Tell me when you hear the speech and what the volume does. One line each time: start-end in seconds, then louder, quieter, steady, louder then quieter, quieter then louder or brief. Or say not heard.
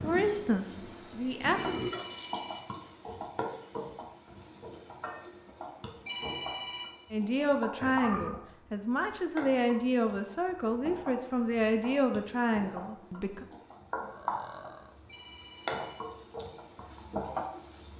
0.0-1.8 brief
7.1-13.4 steady.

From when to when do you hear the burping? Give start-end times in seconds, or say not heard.
1.4-2.0, 7.8-8.4, 14.0-14.9.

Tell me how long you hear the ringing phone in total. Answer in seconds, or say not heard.
3 s.